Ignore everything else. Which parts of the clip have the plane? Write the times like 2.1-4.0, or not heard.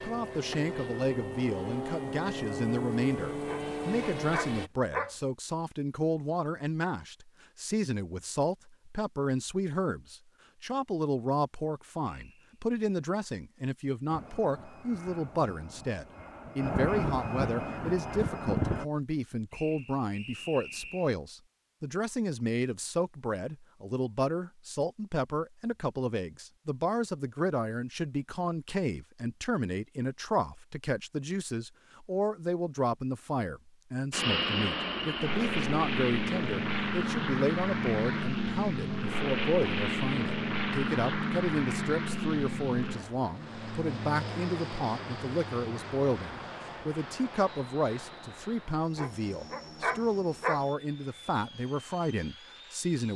0.0-4.7, 14.1-18.9, 34.1-53.1.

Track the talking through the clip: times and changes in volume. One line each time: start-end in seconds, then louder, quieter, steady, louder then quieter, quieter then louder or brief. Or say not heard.
0.0-53.1 steady.